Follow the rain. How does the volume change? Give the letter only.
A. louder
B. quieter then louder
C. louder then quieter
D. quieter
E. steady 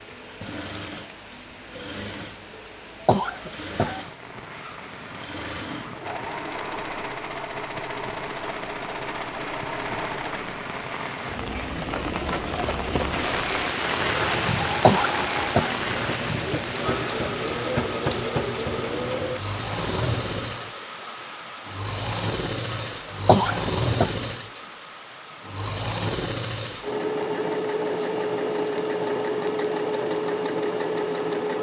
C.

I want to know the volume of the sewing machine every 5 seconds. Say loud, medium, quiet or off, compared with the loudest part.
quiet, medium, medium, loud, loud, loud, loud.